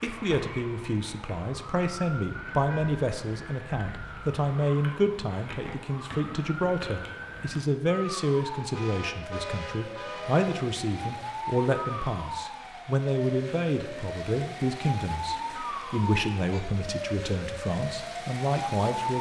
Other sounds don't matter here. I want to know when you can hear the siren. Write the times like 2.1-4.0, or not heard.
0.0-19.1.